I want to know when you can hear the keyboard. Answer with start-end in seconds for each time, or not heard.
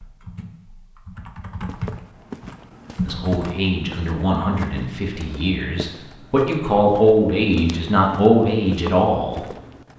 0.0-3.5.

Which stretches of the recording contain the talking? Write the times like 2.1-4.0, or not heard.
3.0-9.4.